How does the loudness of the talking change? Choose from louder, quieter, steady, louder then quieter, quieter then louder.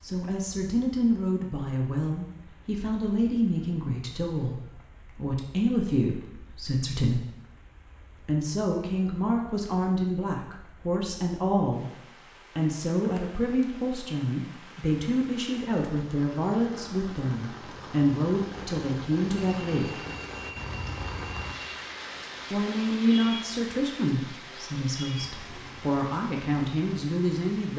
steady.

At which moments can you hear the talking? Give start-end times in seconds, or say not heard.
0.0-7.2, 8.2-11.8, 12.6-20.1, 22.5-27.7.